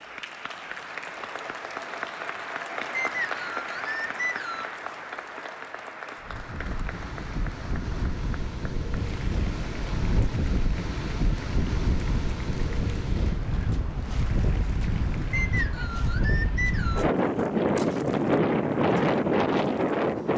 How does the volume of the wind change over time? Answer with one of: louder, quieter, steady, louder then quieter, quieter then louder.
louder.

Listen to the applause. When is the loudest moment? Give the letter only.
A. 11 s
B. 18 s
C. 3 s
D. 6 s
C.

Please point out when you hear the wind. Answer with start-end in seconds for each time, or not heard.
6.2-20.3.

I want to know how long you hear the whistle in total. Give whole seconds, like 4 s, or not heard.
4 s.